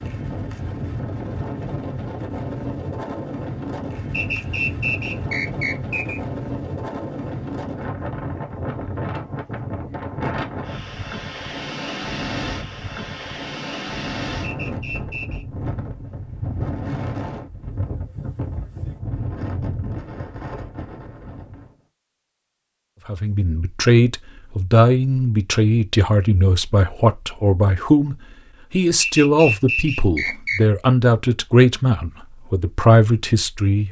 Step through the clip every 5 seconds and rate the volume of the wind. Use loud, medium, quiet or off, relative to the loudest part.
loud, loud, loud, loud, medium, off, off.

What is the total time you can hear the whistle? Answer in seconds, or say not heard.
5 s.